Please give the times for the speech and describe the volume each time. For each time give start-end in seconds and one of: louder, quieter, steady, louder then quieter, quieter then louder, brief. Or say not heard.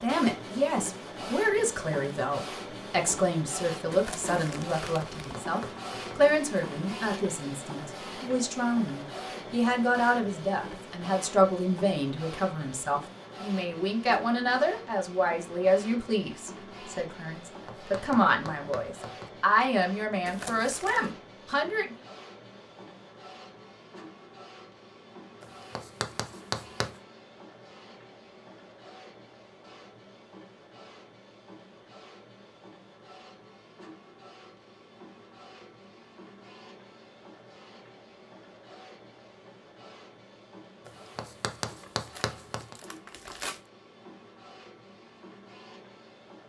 0.0-21.9 steady.